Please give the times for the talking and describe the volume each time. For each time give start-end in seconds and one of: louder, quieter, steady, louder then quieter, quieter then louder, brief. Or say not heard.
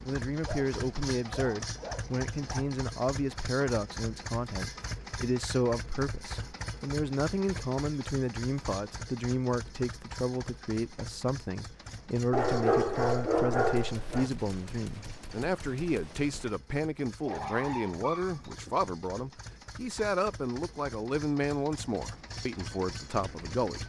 0.0-23.8 steady.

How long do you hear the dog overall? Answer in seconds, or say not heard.
6 s.